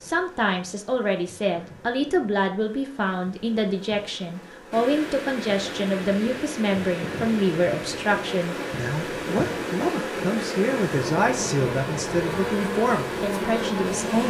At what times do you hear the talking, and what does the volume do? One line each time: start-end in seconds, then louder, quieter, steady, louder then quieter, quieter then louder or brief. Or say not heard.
0.0-14.2 steady.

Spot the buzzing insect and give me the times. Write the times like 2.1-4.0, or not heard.
0.0-14.2.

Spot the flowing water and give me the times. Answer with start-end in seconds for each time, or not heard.
4.7-14.2.